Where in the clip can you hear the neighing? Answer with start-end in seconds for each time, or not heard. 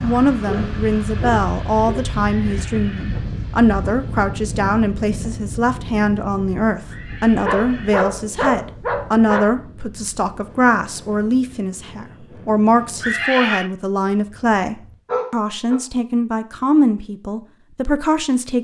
2.2-3.3, 6.8-8.1, 13.0-13.7.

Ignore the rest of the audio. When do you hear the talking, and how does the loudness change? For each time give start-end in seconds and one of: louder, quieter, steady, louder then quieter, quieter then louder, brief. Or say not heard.
0.0-18.6 steady.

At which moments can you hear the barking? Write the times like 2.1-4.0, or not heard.
0.5-2.1, 7.4-9.4, 14.1-15.8.